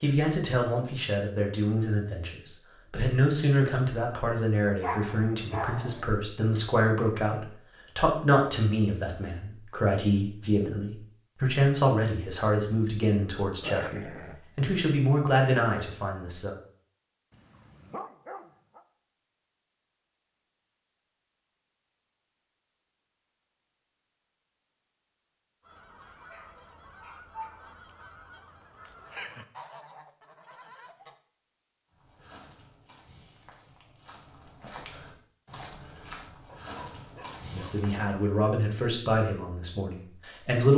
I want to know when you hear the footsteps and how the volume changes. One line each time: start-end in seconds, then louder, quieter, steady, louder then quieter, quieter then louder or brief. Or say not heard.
31.9-38.0 louder.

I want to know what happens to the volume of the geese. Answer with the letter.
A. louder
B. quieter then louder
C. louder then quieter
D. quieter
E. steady
C.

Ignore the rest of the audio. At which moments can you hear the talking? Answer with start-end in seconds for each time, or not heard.
0.0-16.6, 37.5-40.7.